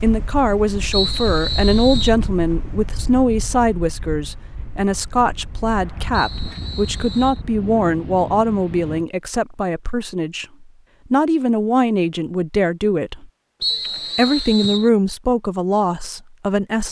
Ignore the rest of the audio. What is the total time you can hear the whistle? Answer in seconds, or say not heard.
4 s.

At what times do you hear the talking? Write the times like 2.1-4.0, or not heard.
0.0-16.8.